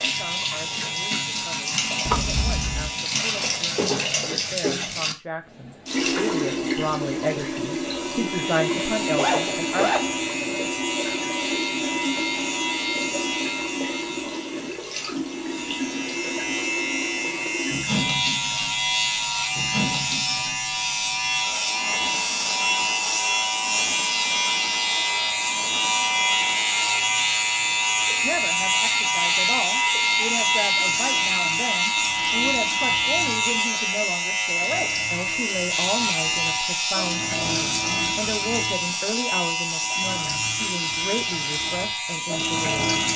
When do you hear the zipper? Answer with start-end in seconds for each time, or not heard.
9.2-10.3.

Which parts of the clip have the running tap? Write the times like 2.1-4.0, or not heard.
0.0-43.1.